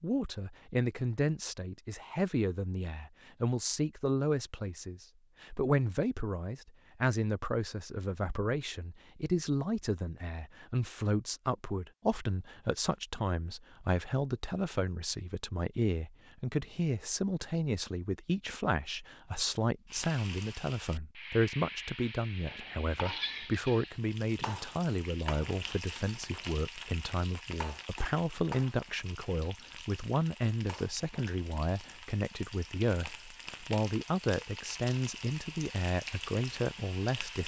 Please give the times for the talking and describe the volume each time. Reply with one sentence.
The talking can be heard from 0.0 to 37.4 s, at a steady volume.